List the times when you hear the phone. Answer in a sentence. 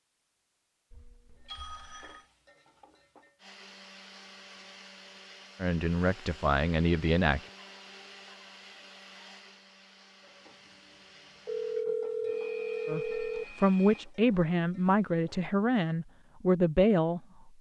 The phone can be heard from 0.9 to 2.3 s and from 11.4 to 13.4 s.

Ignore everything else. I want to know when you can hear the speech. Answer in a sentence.
You can hear the speech from 5.6 to 7.4 s and from 12.8 to 17.5 s.